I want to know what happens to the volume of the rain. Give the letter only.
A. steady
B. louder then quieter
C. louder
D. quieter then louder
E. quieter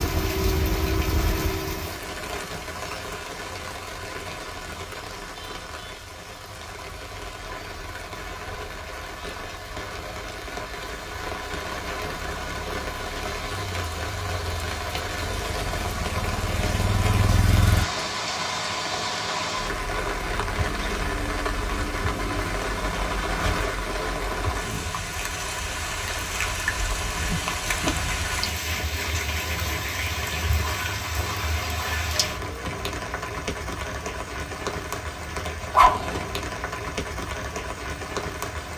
C.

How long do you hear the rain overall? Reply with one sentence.
The rain can be heard for 39 seconds in total.